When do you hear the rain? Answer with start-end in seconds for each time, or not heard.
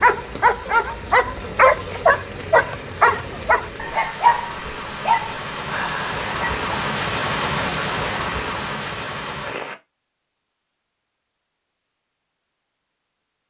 0.0-9.8.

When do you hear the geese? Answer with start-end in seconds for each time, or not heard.
not heard.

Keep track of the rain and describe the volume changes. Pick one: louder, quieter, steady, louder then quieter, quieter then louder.
louder.